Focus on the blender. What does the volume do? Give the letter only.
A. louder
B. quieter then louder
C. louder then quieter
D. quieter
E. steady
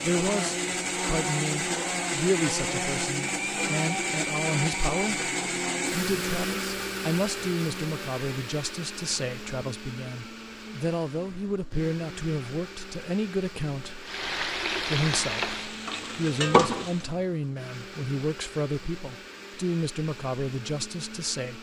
D.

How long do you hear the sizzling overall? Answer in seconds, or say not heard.
3 s.